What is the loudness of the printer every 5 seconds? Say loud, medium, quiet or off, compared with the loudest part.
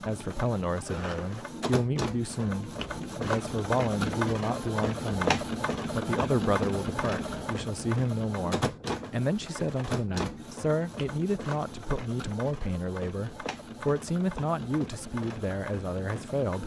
loud, loud, medium, medium.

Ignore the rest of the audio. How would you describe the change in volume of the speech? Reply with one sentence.
The volume of the speech stays about the same.